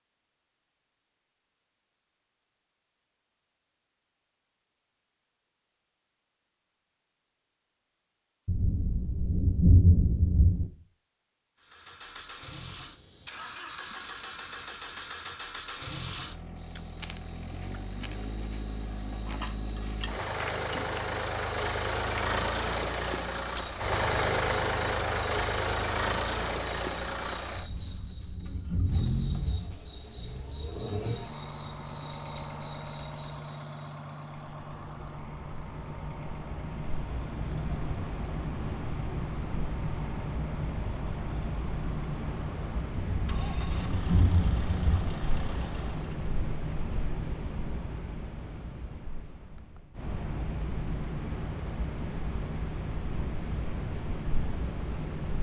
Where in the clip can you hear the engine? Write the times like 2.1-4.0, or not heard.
11.6-46.3.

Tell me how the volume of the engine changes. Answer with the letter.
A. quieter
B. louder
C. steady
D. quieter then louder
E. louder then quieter
E.